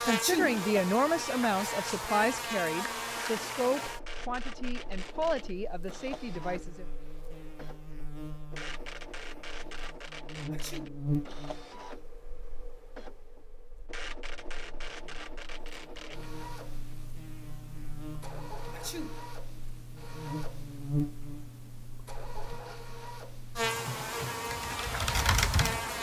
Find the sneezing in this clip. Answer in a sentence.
You can hear the sneezing from 0.1 to 0.7 s, from 10.5 to 11.1 s and from 18.7 to 19.2 s.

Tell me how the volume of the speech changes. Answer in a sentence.
The volume of the speech goes down.